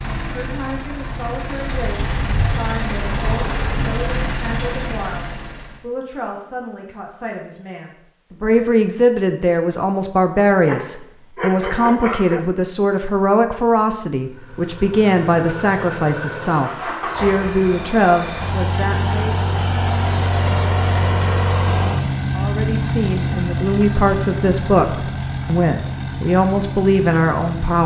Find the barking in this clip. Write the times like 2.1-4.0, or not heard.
10.6-12.4.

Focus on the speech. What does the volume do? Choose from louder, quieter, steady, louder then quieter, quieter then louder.
louder.